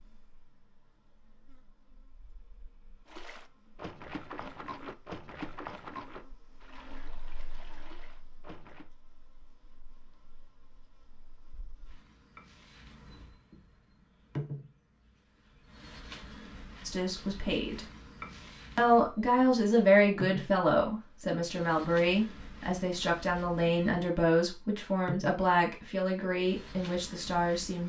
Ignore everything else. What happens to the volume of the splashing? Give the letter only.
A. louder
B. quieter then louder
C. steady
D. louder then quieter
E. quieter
E.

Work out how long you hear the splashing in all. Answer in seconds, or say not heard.
6 s.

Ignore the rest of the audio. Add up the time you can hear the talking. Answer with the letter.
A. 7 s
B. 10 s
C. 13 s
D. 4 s
B.